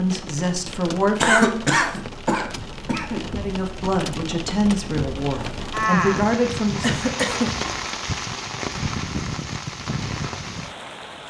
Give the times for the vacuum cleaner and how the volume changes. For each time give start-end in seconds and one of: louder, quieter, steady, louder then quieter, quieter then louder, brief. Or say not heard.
not heard.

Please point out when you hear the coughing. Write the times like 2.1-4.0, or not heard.
1.2-3.2, 6.8-7.5.